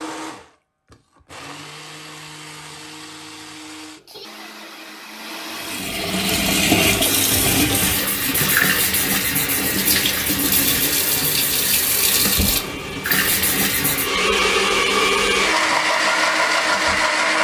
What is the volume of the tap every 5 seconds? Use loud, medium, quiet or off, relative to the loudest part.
off, loud, loud, quiet.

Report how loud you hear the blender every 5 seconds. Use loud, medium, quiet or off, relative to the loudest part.
quiet, quiet, medium, loud.